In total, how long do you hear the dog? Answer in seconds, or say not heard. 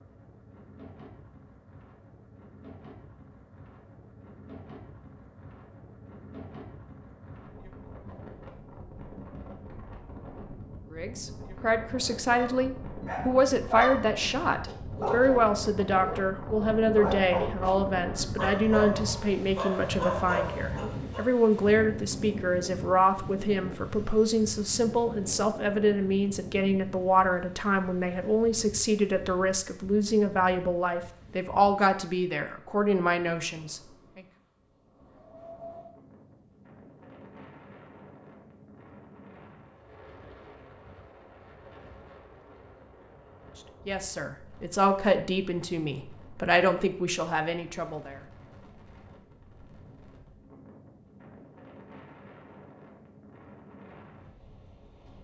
9 s.